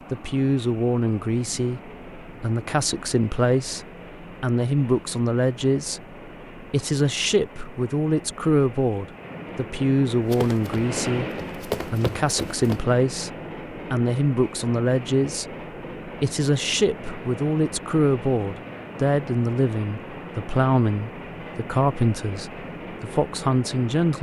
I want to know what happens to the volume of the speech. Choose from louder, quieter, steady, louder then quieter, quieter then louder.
steady.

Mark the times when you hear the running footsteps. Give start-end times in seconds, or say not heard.
10.2-12.8.